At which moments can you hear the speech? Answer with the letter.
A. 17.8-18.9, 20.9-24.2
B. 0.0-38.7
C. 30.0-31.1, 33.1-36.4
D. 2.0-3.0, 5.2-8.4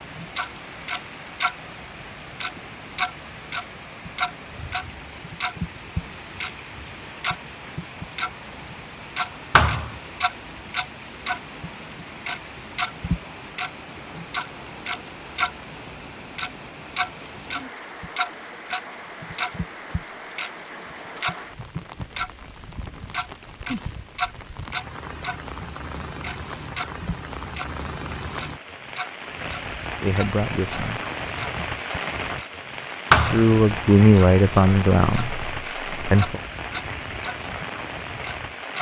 C.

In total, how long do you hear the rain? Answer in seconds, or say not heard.
39 s.